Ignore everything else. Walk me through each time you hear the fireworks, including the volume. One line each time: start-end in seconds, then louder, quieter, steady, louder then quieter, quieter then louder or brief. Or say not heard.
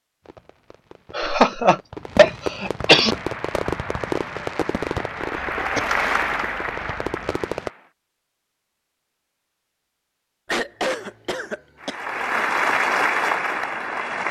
0.2-7.7 louder then quieter.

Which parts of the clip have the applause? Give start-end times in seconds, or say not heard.
3.0-7.9, 11.8-14.2.